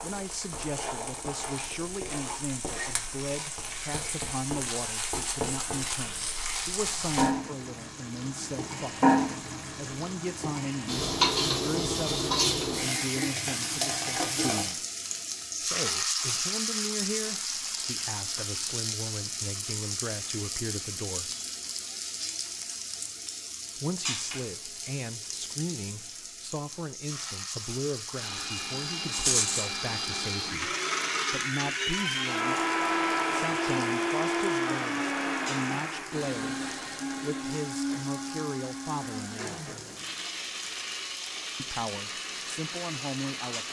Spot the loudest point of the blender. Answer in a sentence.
The volume of the blender peaks at 33 seconds.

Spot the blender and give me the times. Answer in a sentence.
The blender can be heard from 28.1 to 43.6 s.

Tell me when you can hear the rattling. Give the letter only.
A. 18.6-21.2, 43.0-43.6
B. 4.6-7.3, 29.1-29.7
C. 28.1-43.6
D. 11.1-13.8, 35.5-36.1
B.